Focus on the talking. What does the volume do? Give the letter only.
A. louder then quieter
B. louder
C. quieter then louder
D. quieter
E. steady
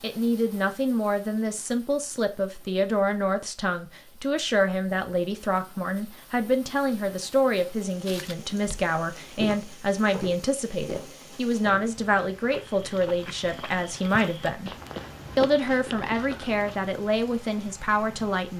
E.